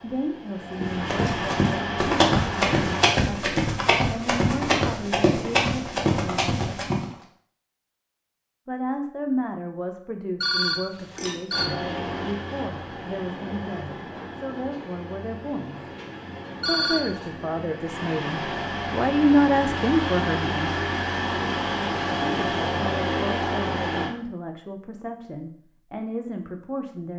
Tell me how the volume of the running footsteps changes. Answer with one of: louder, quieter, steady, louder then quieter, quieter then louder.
steady.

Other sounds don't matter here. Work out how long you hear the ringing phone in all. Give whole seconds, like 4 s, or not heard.
2 s.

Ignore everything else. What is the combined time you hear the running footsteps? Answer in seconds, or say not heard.
6 s.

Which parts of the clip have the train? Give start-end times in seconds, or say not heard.
0.0-3.1, 11.5-24.1.